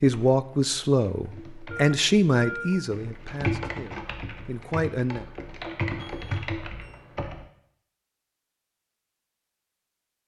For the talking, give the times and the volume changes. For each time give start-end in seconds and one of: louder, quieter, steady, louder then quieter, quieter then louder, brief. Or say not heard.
0.0-5.2 quieter then louder.